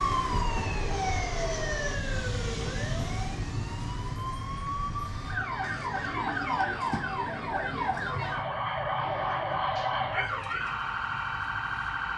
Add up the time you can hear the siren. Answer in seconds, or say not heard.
12 s.